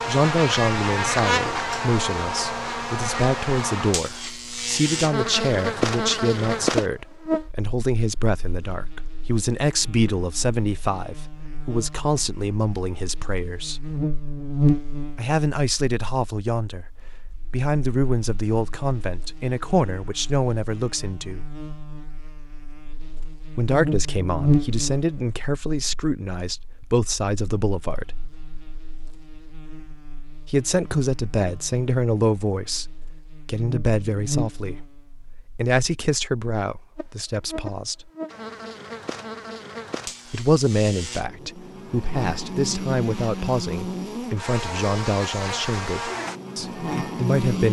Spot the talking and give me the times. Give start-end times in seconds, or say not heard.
0.1-13.8, 15.2-21.5, 23.5-28.1, 30.4-38.1, 40.3-47.6.